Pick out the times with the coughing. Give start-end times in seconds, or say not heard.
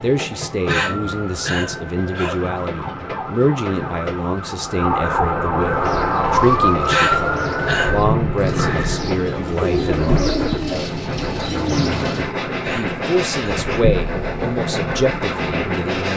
0.7-2.5, 6.8-8.0, 12.6-13.6.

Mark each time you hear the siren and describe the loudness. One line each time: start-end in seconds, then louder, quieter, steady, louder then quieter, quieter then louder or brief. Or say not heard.
0.1-16.1 louder then quieter.